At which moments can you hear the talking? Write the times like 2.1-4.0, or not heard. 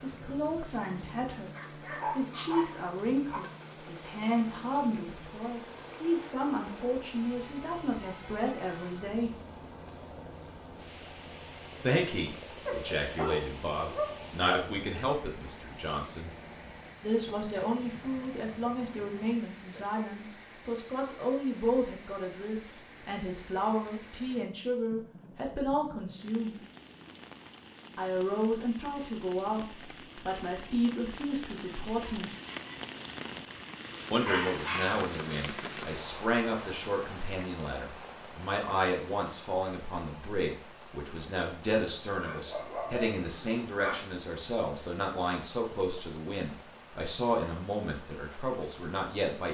0.0-9.3, 11.8-16.3, 17.0-26.6, 27.9-32.3, 34.1-49.4.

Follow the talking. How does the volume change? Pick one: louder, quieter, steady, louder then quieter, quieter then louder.
steady.